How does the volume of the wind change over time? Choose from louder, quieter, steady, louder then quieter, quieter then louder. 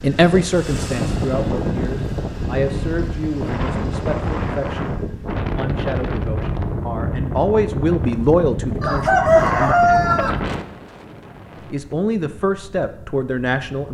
quieter.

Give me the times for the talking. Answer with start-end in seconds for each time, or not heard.
0.0-9.9, 11.7-13.9.